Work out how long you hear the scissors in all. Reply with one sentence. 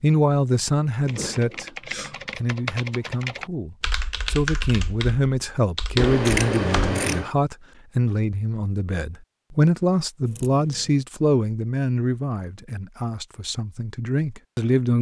The scissors can be heard for 3 seconds in total.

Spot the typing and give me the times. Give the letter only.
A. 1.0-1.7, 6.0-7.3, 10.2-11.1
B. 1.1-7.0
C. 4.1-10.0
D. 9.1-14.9
B.